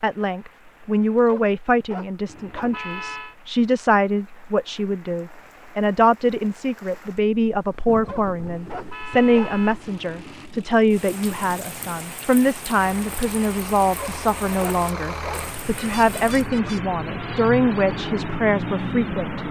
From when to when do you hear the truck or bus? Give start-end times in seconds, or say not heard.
12.8-19.4.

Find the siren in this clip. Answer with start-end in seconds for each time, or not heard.
not heard.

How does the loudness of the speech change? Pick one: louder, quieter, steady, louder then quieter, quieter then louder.
steady.